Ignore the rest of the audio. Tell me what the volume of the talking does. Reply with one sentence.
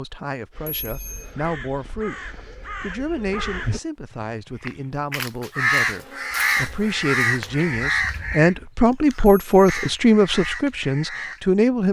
The volume of the talking goes up.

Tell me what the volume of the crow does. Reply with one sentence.
The volume of the crow goes up, then down.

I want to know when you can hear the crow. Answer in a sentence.
The crow can be heard from 0.5 to 11.4 s.